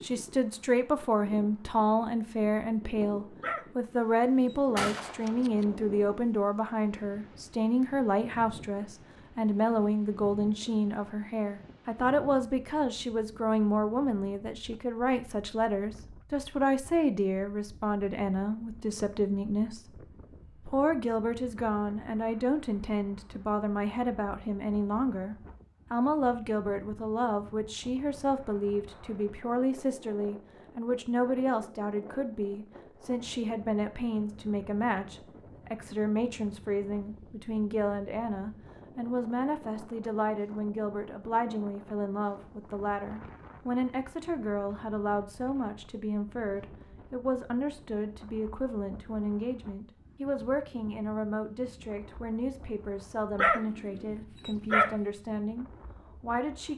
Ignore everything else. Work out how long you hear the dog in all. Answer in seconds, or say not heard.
4 s.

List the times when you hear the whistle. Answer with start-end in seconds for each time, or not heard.
not heard.